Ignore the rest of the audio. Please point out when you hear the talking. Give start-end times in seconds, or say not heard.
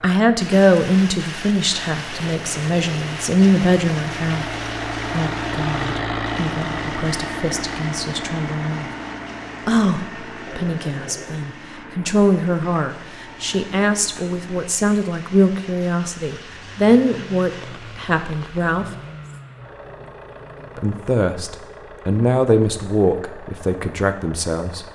0.0-4.5, 5.1-8.9, 9.7-18.9, 20.8-24.9.